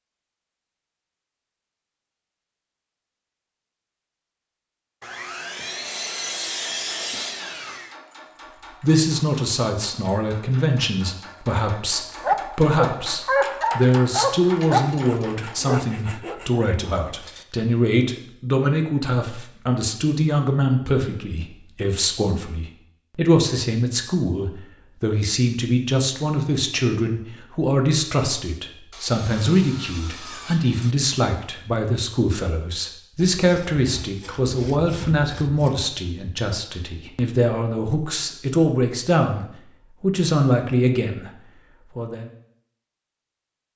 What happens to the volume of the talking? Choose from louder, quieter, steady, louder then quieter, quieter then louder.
steady.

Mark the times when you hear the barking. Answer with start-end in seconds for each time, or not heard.
12.2-17.4.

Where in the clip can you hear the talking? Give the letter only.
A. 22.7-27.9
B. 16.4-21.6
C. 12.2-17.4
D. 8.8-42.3
D.